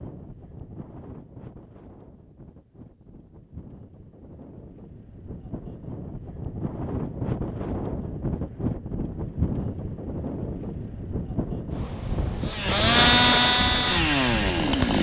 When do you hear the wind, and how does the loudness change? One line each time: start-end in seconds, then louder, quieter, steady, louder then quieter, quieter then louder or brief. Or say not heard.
0.0-14.9 louder.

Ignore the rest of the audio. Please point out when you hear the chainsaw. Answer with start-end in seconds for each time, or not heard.
12.4-14.9.